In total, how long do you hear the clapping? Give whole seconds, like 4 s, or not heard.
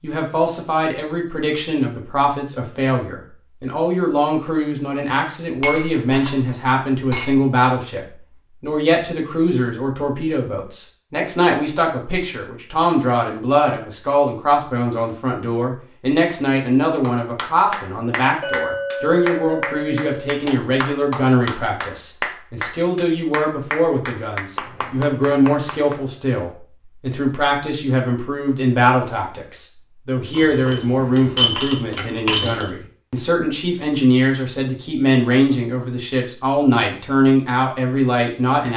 9 s.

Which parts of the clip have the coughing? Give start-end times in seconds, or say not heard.
not heard.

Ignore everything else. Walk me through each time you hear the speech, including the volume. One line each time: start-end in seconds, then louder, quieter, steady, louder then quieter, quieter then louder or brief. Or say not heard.
0.0-38.7 steady.